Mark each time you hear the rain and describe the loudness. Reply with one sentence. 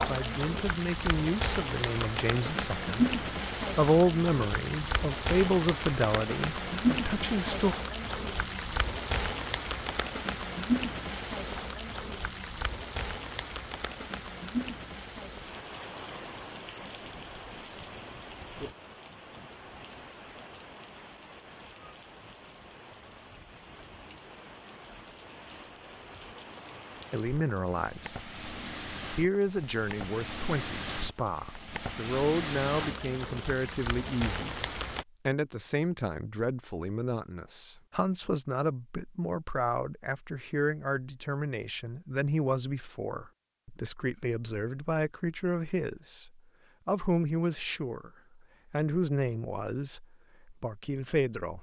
You can hear the rain from 0.0 to 35.0 s, getting quieter then louder.